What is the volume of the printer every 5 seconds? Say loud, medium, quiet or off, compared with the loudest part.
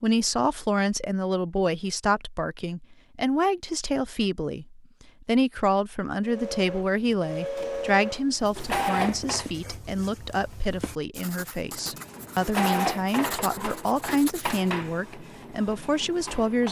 off, loud, loud, medium.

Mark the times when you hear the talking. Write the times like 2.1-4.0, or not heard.
0.0-16.6.